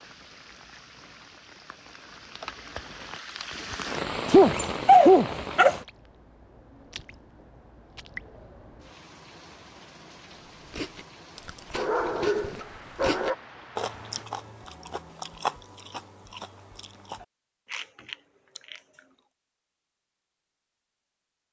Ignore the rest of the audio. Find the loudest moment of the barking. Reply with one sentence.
The loudest moment of the barking is at 5 seconds.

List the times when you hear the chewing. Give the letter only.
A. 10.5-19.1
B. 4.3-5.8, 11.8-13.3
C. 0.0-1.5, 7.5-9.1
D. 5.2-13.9
A.